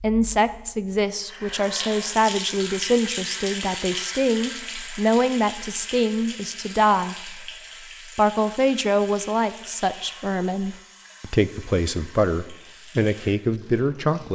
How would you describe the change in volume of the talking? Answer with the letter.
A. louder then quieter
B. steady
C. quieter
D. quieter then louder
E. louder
B.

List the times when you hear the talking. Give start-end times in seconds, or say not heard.
0.0-7.5, 8.2-14.3.